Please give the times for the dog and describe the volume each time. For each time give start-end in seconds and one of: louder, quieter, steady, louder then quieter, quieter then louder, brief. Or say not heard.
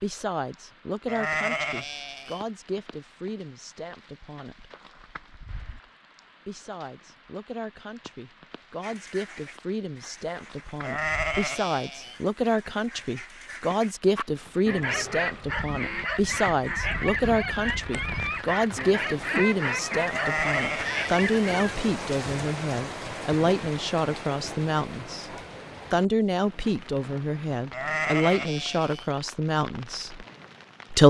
14.2-21.8 steady.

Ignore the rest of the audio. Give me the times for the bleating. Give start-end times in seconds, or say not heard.
1.1-2.5, 10.8-12.2, 20.1-21.3, 27.7-29.1.